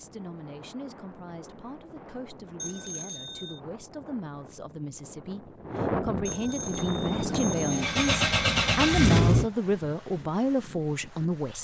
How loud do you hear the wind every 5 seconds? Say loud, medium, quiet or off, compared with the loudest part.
quiet, loud, quiet.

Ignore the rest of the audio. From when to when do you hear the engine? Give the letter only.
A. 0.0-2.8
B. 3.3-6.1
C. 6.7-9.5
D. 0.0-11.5
C.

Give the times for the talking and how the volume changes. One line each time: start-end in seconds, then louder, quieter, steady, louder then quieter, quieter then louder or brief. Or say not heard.
0.0-11.5 louder.